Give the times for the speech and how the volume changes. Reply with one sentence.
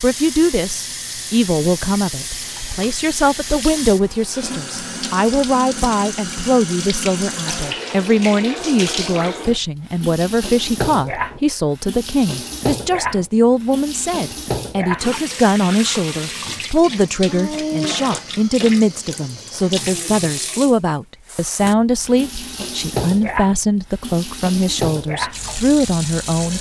You can hear the speech from 0.0 to 26.5 s, at a steady volume.